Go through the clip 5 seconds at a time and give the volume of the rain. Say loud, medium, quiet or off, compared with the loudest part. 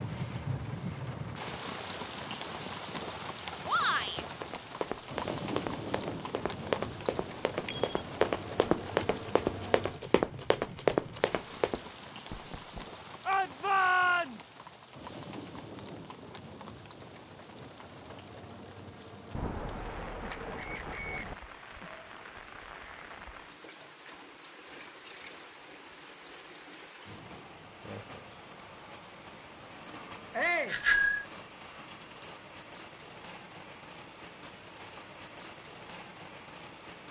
loud, loud, medium, medium, medium, medium, medium, medium.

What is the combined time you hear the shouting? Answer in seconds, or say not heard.
2 s.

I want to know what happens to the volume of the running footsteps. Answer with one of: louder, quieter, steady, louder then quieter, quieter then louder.
louder.